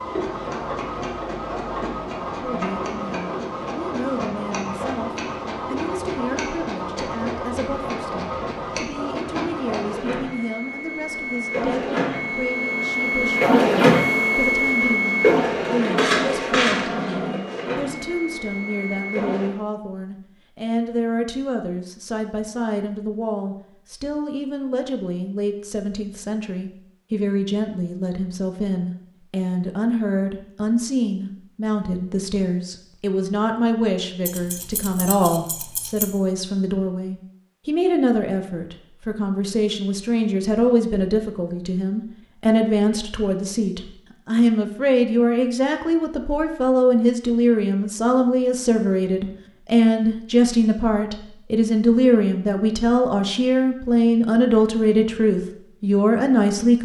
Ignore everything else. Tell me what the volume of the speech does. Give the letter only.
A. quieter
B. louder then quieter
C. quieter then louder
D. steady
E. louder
E.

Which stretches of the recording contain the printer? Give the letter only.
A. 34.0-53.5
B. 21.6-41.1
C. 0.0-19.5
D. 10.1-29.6
C.